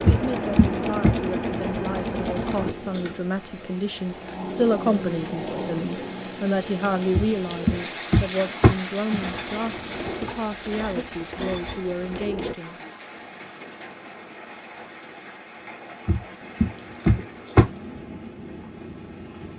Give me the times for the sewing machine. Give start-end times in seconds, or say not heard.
0.0-2.8, 9.2-12.6.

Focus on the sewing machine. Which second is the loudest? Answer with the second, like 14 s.
1 s.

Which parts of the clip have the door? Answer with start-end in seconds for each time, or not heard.
0.1-1.1, 7.2-9.3, 16.1-17.6.